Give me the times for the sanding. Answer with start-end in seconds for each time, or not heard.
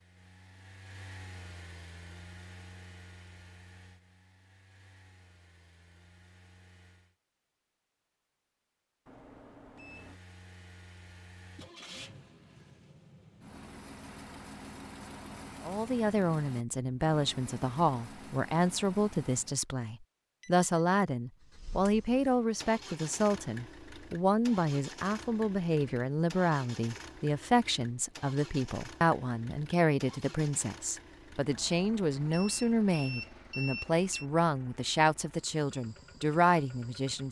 not heard.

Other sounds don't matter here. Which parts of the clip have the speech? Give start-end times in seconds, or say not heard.
15.6-37.2.